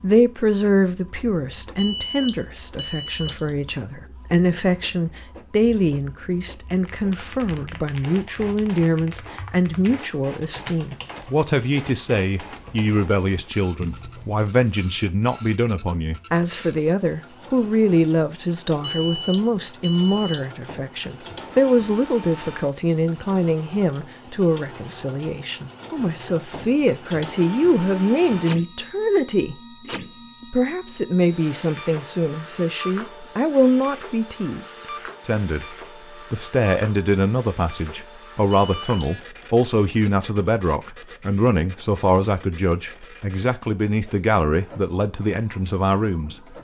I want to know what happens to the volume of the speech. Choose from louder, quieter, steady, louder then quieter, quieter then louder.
steady.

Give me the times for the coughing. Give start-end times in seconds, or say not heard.
not heard.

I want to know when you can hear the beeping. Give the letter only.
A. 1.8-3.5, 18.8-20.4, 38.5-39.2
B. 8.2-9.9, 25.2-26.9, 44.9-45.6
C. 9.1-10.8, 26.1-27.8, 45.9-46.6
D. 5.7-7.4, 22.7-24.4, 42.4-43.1
A.